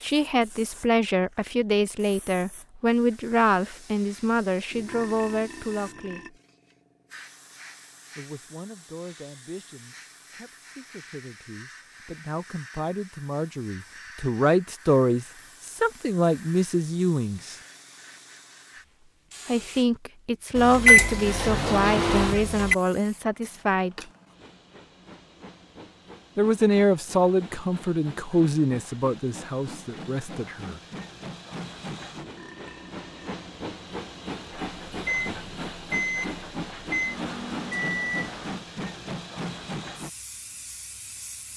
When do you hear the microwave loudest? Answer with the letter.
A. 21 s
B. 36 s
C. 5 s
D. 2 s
A.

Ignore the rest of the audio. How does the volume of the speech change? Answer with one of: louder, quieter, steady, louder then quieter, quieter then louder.
quieter then louder.